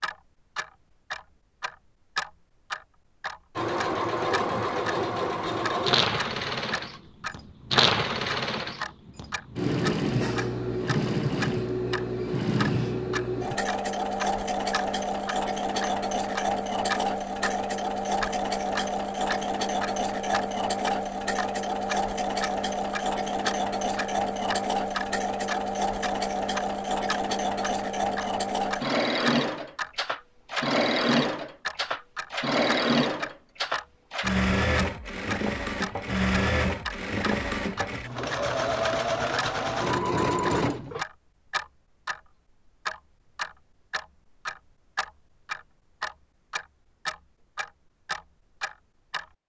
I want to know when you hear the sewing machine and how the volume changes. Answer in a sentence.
You can hear the sewing machine from 3.5 to 41.0 s, at a steady volume.